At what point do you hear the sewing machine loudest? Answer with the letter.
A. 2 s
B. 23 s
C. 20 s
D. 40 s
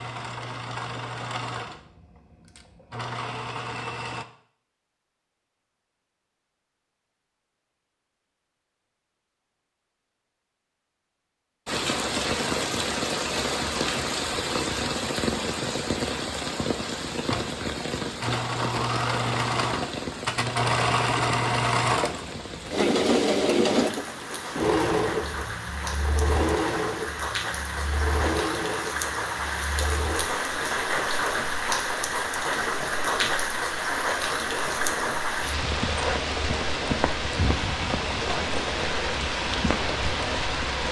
B.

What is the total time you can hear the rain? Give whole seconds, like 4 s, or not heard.
29 s.